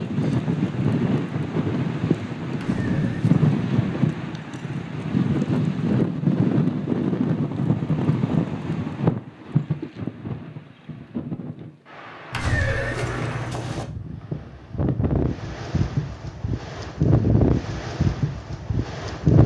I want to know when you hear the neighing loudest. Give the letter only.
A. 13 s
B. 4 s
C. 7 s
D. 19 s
A.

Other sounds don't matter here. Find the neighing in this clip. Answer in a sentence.
The neighing can be heard from 2.5 to 3.5 s and from 12.3 to 13.8 s.